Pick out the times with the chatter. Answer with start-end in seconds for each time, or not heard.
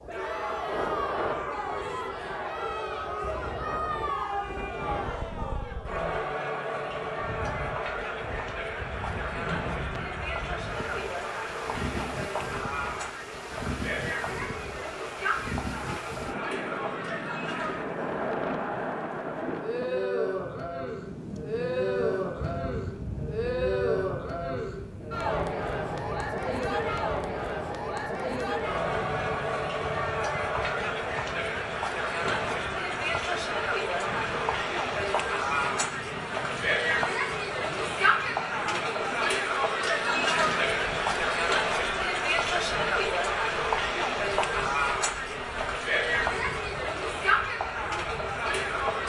0.1-49.0.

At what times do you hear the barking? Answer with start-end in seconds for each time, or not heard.
5.0-6.0.